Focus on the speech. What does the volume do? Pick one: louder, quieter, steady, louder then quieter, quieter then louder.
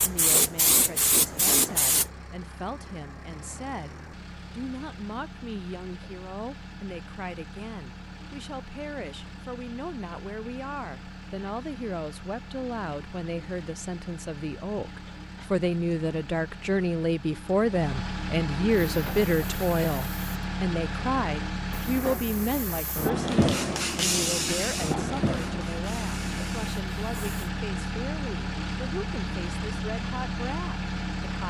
louder then quieter.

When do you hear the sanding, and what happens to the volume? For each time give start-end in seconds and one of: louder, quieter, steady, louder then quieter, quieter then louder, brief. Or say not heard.
not heard.